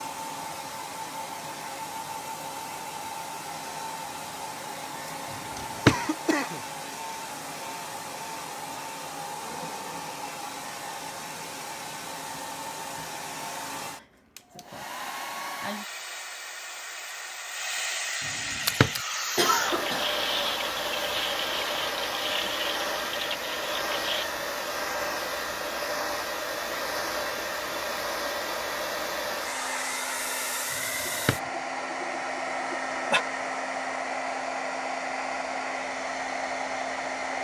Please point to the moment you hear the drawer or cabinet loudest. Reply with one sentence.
The loudest moment of the drawer or cabinet is at 6 seconds.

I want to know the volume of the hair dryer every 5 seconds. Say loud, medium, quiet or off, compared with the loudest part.
medium, medium, medium, loud, loud, loud, loud, loud.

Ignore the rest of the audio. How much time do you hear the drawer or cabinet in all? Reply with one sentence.
You can hear the drawer or cabinet for 2 seconds altogether.